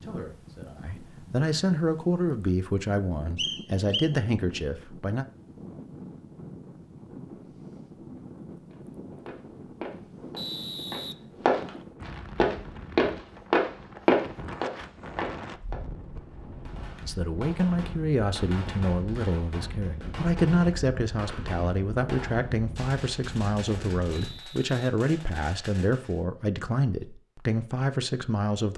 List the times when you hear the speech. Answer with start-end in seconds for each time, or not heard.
0.0-5.2, 17.0-28.7.